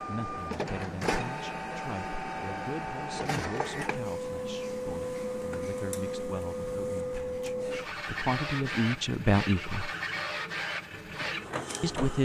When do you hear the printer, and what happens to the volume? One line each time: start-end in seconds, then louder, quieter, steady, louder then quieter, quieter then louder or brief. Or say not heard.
0.0-12.2 steady.